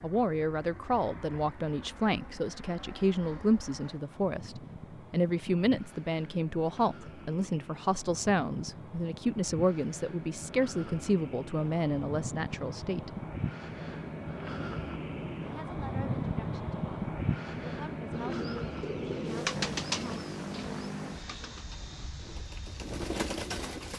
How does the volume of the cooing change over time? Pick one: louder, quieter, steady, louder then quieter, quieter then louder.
quieter then louder.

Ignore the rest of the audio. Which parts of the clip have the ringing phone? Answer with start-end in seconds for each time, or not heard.
not heard.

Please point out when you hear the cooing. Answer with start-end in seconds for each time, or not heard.
18.1-23.9.